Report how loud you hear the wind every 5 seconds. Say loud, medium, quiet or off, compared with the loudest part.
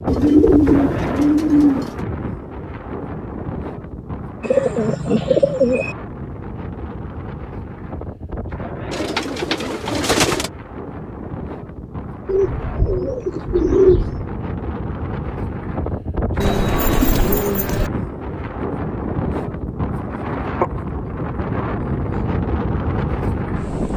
loud, medium, medium, loud, loud.